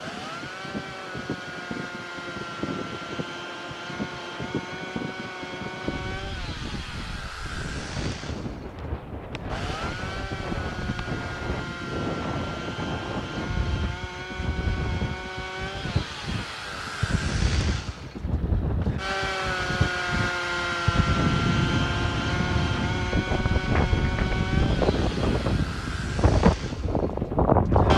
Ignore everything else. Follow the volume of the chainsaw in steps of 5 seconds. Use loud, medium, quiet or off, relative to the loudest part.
medium, medium, medium, loud, loud, medium.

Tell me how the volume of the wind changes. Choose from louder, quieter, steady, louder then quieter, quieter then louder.
louder.